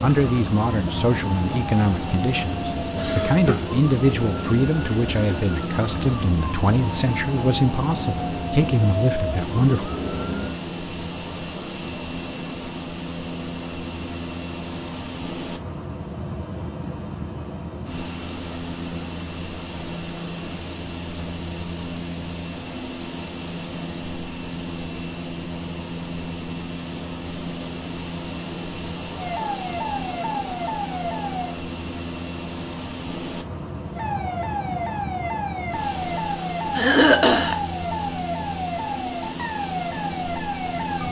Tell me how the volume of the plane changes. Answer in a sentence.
The volume of the plane stays about the same.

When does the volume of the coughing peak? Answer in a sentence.
The volume of the coughing peaks at 37 seconds.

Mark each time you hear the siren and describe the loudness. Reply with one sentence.
The siren can be heard from 0.0 to 10.6 s, at a steady volume; briefly from 29.1 to 31.6 s; and from 33.9 to 41.0 s, at a steady volume.